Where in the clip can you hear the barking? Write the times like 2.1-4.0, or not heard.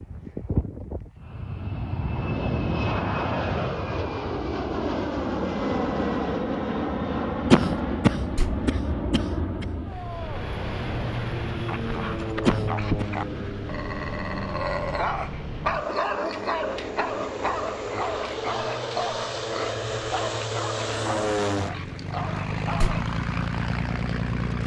11.7-23.1.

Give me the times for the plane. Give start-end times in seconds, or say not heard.
0.0-24.6.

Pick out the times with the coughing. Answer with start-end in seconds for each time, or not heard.
7.5-9.7, 12.4-13.1.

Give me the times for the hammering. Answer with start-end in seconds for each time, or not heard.
not heard.